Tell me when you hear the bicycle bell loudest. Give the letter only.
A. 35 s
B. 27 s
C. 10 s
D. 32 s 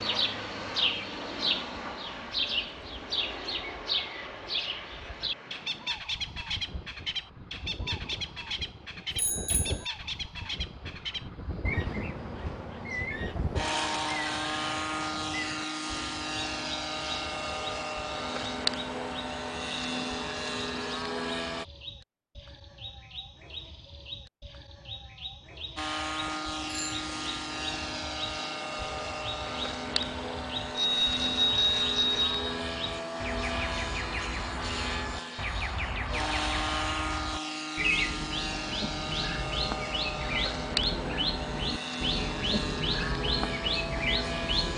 D.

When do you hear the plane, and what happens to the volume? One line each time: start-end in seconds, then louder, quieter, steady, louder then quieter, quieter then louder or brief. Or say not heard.
0.0-21.6 quieter then louder
25.8-44.7 steady.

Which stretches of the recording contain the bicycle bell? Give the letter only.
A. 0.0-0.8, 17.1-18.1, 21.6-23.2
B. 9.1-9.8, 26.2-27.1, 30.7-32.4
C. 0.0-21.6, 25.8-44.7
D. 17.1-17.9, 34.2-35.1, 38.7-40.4
B.